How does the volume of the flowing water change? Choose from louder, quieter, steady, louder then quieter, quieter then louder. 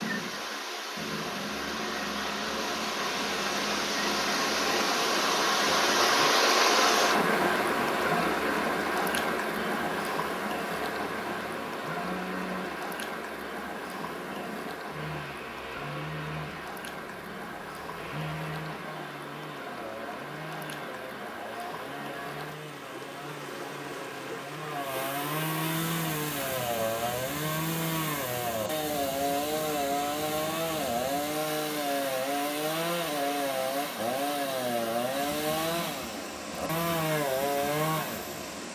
quieter.